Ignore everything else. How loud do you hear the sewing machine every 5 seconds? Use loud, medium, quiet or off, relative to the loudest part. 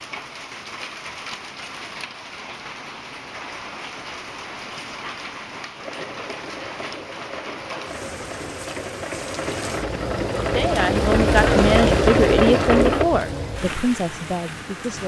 off, quiet, loud.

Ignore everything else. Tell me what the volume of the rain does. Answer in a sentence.
The loudness of the rain goes up.